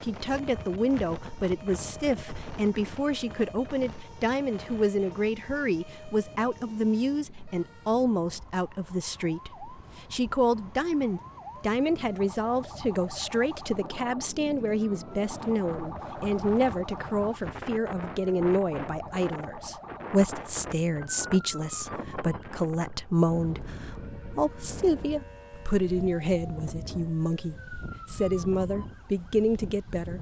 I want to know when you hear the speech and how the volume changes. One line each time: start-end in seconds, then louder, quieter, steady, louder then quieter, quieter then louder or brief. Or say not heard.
0.0-30.1 steady.